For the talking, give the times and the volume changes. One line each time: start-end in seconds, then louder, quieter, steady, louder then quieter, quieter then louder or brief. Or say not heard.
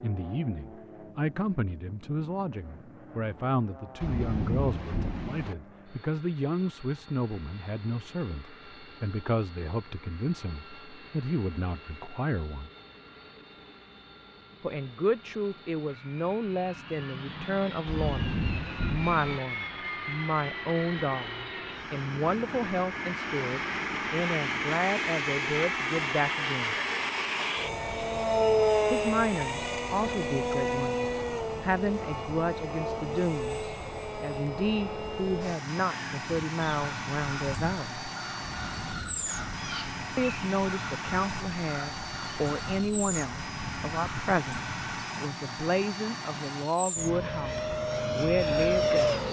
0.0-12.7 steady
14.6-26.8 steady
28.9-38.0 steady
40.1-49.2 steady.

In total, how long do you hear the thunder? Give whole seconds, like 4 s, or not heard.
4 s.